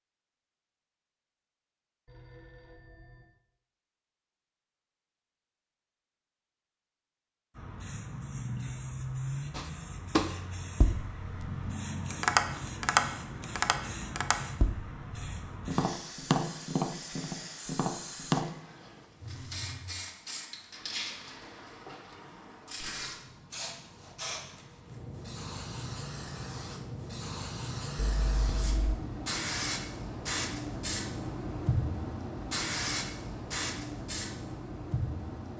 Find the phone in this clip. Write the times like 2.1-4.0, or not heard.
2.0-3.2, 19.2-19.9, 27.9-28.9.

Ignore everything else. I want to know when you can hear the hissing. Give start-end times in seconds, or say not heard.
7.5-35.5.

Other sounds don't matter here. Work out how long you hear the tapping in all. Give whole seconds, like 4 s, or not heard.
9 s.